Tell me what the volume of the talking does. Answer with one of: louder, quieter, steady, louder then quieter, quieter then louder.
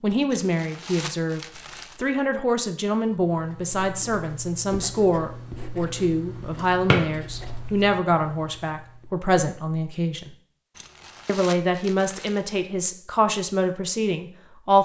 steady.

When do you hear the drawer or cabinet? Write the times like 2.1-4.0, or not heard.
6.3-7.0.